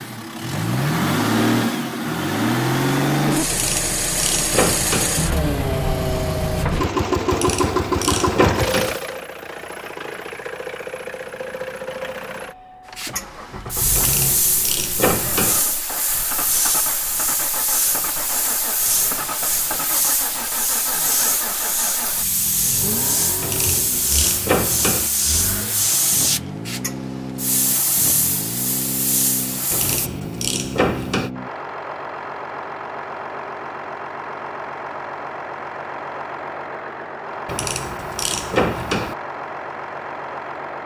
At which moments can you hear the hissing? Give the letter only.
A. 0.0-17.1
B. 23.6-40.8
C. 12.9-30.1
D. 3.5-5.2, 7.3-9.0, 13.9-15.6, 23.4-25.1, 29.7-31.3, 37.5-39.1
C.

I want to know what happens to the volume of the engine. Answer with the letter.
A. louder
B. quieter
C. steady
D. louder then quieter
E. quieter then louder
B.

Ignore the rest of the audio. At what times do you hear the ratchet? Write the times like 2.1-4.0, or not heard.
3.5-5.2, 7.3-9.0, 13.9-15.6, 23.4-25.1, 29.7-31.3, 37.5-39.1.